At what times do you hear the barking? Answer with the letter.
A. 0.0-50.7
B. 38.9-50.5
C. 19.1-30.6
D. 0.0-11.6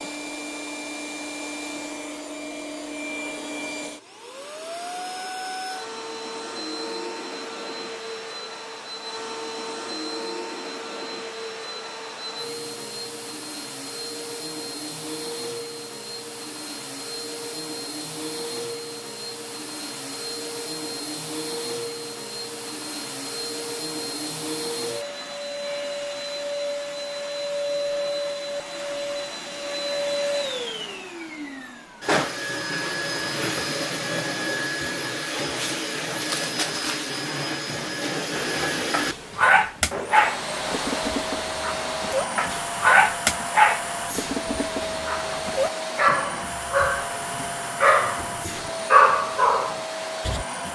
B.